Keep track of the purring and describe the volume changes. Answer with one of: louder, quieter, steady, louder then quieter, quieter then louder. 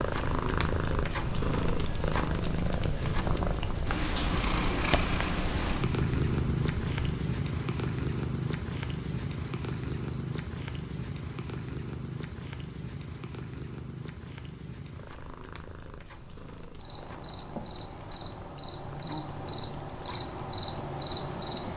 quieter.